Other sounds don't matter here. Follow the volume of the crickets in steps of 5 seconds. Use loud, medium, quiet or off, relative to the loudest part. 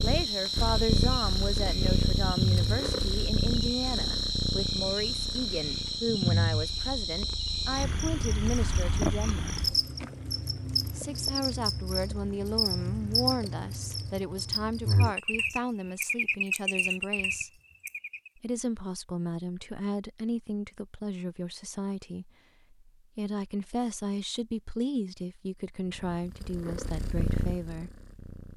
loud, loud, loud, loud, off, off.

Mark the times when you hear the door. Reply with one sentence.
You can't hear the door here.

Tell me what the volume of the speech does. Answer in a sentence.
The volume of the speech stays about the same.